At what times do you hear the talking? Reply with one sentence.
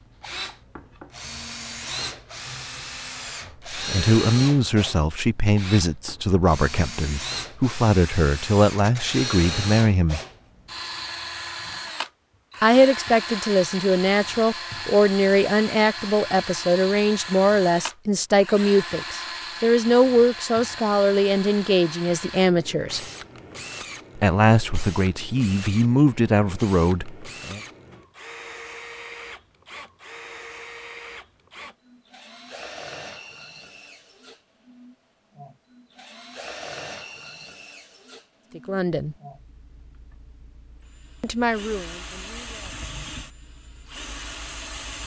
The talking can be heard from 3.7 to 10.2 s, from 12.6 to 23.1 s, from 24.1 to 27.6 s, from 38.5 to 39.1 s and from 41.2 to 42.8 s.